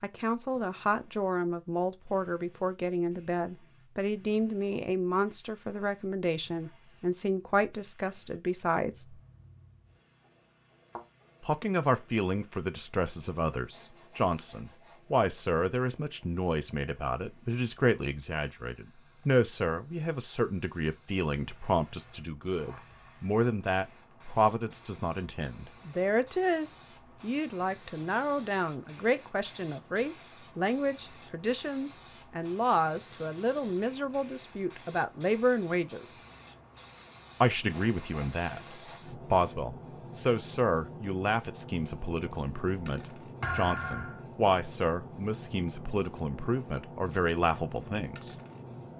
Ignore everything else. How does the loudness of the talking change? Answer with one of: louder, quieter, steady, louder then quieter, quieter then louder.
steady.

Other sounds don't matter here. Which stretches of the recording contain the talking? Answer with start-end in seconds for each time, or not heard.
0.0-9.2, 11.4-36.1, 37.4-48.4.